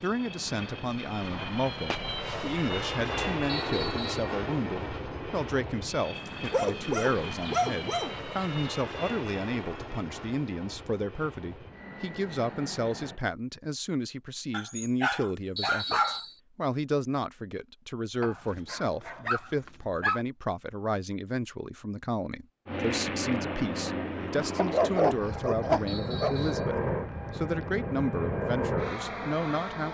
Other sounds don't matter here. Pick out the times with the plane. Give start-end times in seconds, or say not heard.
0.0-13.2, 22.6-29.8.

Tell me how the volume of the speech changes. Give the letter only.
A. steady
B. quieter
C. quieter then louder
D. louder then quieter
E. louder
A.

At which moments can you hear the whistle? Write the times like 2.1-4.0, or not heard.
3.5-4.3, 15.6-16.4, 25.9-26.7.